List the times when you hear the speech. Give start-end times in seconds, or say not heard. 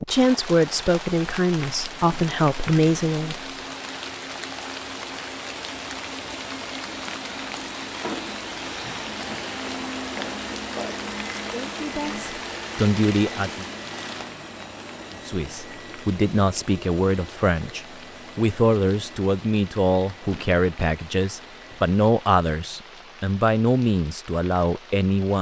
0.1-3.4, 11.5-13.7, 15.1-25.3.